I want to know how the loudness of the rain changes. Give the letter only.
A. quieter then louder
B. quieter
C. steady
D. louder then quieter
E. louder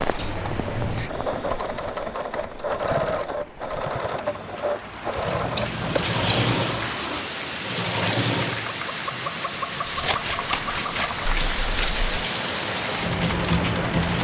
E.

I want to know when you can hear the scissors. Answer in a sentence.
The scissors can be heard from 0.1 to 1.1 s, from 5.2 to 6.5 s and from 9.8 to 12.1 s.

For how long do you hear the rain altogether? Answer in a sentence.
You can hear the rain for 14 seconds altogether.